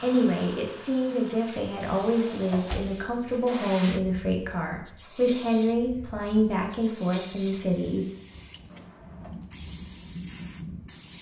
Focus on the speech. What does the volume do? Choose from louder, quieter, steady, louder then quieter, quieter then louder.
steady.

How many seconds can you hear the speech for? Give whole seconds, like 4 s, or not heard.
8 s.